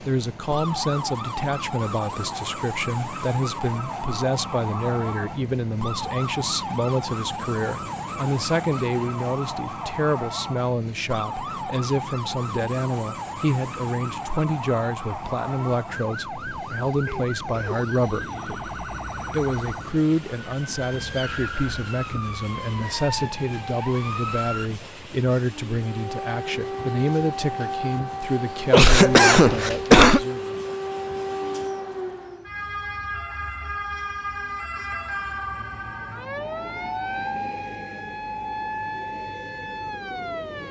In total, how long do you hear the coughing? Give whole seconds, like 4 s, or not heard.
2 s.